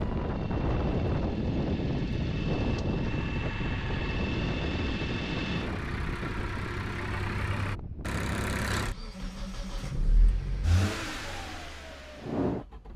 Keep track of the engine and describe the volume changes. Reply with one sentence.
The volume of the engine goes up.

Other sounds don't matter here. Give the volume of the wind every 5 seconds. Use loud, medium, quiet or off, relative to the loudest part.
loud, medium, off.